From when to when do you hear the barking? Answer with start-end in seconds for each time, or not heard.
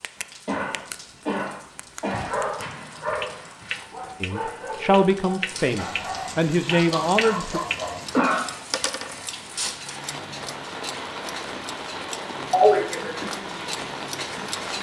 2.1-8.0.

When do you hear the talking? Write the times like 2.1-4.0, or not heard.
4.2-7.6.